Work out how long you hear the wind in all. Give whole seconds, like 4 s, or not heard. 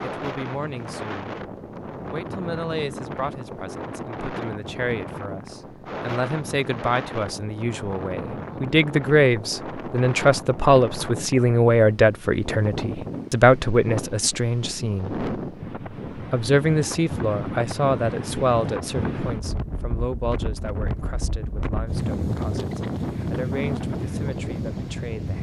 25 s.